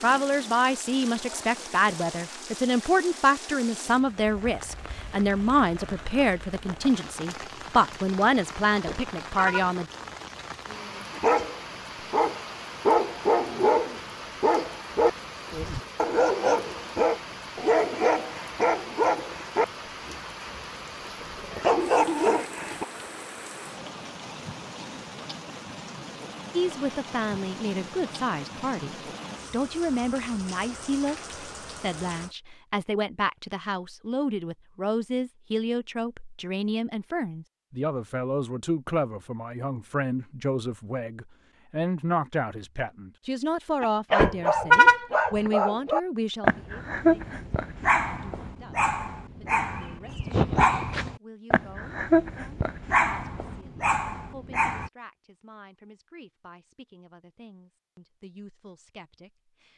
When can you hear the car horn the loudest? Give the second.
45 s.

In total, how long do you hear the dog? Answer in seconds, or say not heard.
22 s.